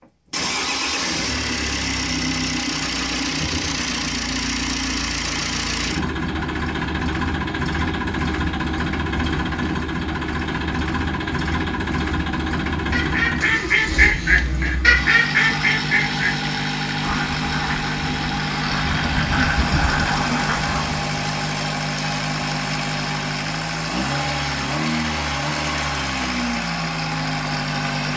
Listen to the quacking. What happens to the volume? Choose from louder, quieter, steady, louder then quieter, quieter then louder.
quieter then louder.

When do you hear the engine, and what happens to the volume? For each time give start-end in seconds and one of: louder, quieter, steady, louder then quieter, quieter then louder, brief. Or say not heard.
0.0-28.1 steady.